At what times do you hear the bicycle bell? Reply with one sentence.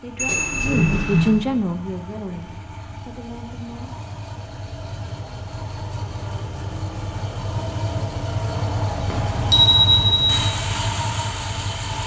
The bicycle bell can be heard from 0.1 to 1.3 s and from 9.1 to 10.4 s.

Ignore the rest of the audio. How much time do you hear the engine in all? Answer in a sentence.
You can hear the engine for 12 seconds altogether.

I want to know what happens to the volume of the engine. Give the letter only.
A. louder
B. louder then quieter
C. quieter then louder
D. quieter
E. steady
A.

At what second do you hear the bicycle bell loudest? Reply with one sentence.
The volume of the bicycle bell peaks at 10 seconds.